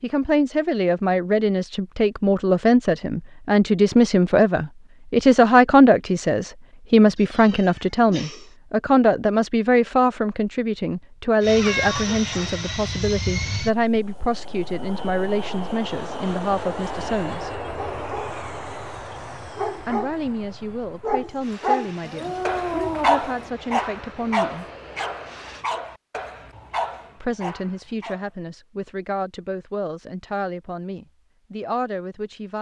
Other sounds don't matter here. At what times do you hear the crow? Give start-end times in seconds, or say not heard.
not heard.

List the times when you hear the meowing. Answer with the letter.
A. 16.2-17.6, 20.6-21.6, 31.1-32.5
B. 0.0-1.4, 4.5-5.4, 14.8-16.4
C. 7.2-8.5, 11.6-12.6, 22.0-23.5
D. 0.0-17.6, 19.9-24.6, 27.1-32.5
C.